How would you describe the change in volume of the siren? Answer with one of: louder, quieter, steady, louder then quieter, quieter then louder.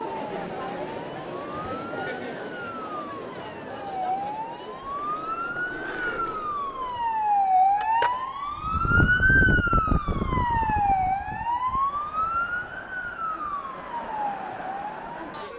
louder then quieter.